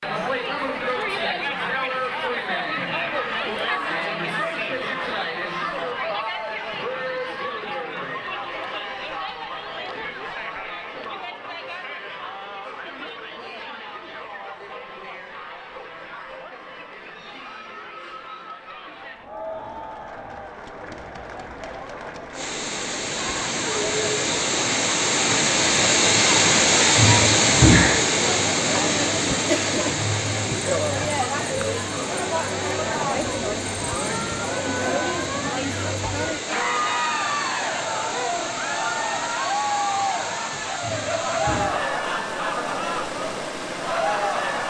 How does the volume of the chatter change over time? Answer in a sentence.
The loudness of the chatter goes down, then up.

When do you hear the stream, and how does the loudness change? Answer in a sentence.
The stream can be heard from 22.3 to 44.6 s, getting quieter.